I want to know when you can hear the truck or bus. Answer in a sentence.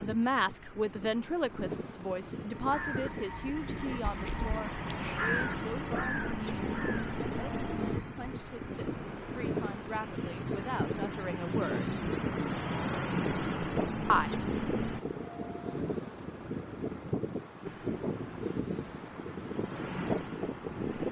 The truck or bus can be heard from 0.0 to 15.0 s and from 17.6 to 21.0 s.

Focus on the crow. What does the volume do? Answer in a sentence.
The loudness of the crow goes up, then down.